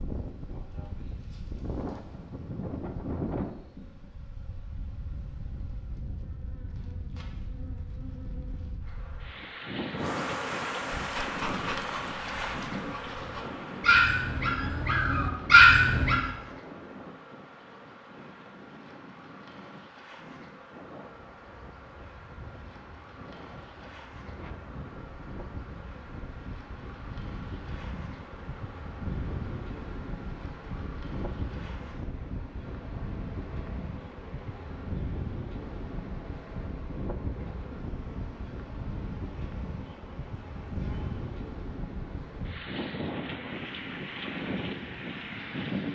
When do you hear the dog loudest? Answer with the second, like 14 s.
16 s.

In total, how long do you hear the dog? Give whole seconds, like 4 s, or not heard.
5 s.